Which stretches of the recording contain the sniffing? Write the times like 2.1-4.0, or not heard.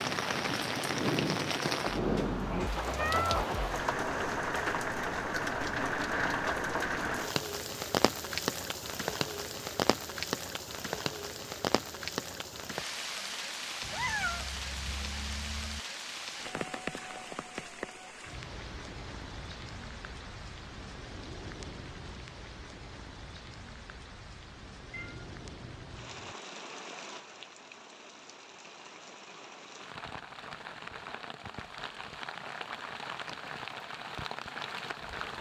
0.9-2.5.